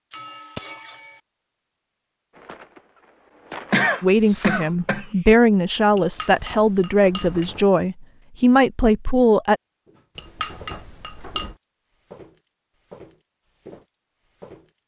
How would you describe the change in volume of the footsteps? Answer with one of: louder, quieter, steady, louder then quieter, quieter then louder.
steady.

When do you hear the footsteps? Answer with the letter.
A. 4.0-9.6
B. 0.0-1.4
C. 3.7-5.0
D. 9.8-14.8
D.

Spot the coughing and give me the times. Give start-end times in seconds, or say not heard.
3.7-5.0.